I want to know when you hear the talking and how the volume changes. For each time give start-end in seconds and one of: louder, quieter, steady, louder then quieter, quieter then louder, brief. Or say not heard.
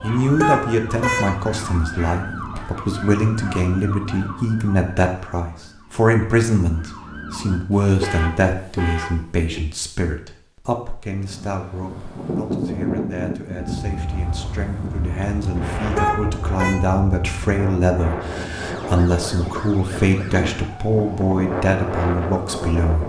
0.0-23.0 quieter then louder.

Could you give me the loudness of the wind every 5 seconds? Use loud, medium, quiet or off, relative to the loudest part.
off, off, loud, loud, loud.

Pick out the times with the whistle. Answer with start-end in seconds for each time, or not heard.
not heard.